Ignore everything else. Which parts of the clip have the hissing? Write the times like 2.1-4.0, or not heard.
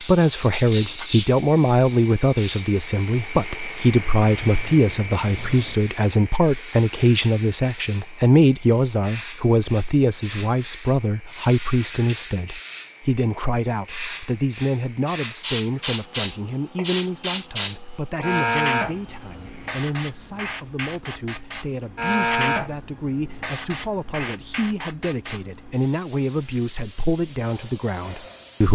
0.0-28.7.